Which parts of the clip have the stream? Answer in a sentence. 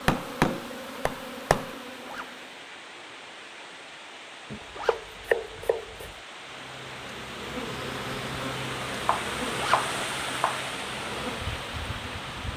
You can hear the stream from 0.0 to 12.5 s.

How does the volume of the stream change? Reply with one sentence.
The volume of the stream goes up.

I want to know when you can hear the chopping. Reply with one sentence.
You can hear the chopping from 0.1 to 1.7 s, from 4.5 to 6.2 s and from 8.9 to 10.6 s.